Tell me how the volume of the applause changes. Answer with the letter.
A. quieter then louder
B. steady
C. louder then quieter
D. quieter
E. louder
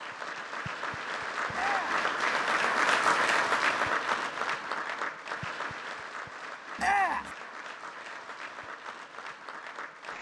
C.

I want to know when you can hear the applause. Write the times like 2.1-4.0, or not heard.
0.0-10.1.